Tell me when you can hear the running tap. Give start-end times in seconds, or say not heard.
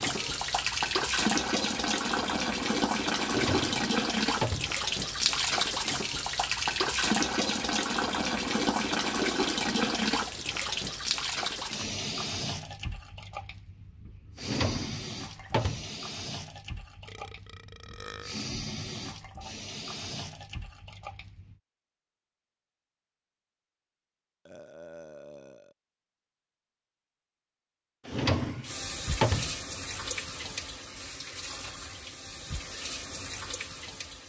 0.0-21.6, 28.6-34.2.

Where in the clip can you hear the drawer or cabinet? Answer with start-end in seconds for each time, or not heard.
3.2-4.8, 14.3-15.9, 28.1-29.6.